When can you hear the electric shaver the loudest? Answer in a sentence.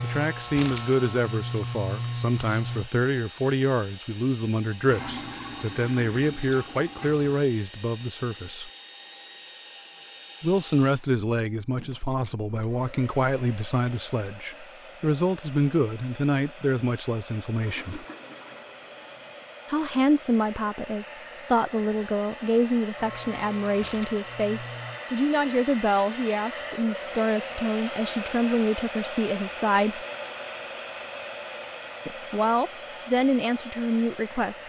The loudest moment of the electric shaver is at 2 seconds.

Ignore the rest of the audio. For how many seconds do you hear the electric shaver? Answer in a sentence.
You can hear the electric shaver for 5 seconds altogether.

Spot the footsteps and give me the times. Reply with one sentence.
You can't hear the footsteps here.